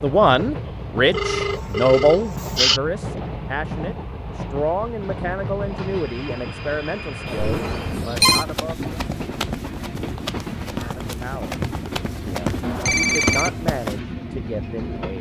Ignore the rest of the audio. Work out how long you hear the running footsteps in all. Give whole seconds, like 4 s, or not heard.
6 s.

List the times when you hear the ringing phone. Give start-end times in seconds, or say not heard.
1.1-2.8, 7.2-8.4, 12.6-13.6.